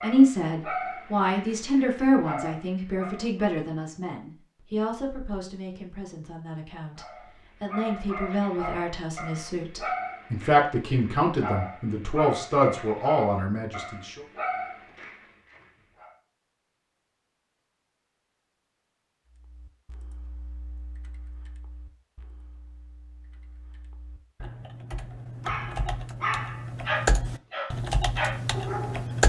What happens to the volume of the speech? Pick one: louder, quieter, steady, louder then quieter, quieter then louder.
quieter then louder.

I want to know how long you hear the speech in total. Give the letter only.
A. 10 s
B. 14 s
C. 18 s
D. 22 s
B.